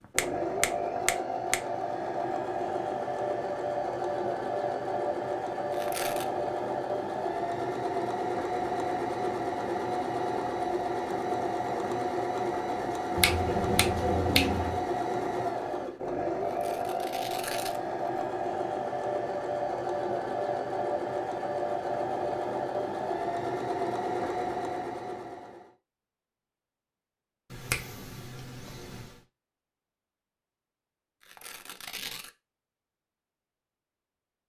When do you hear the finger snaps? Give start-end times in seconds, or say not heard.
0.1-1.6, 13.2-14.8, 27.5-29.2.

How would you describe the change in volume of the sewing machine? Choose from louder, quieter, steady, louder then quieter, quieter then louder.
steady.